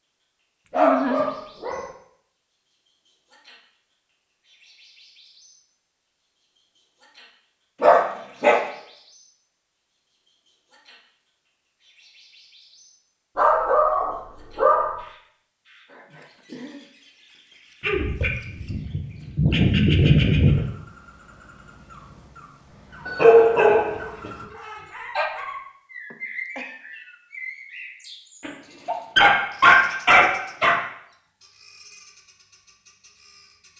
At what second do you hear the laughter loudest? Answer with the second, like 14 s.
1 s.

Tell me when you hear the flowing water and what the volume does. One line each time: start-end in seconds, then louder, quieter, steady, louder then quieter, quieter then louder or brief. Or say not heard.
not heard.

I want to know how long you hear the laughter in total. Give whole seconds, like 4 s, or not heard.
2 s.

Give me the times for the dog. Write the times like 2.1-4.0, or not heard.
0.7-1.9, 7.8-8.6, 13.3-14.9, 17.8-20.7, 23.1-25.2, 28.4-30.8.